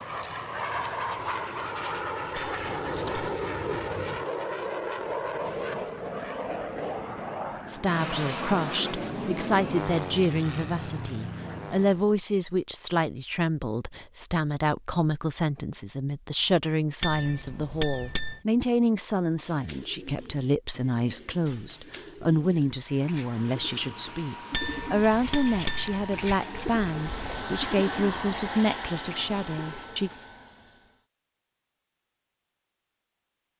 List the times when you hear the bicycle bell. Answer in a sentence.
You can hear the bicycle bell from 2.4 to 3.3 s, from 17.0 to 18.4 s and from 24.5 to 26.4 s.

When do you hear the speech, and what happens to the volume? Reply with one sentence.
The speech can be heard from 7.7 to 30.1 s, at a steady volume.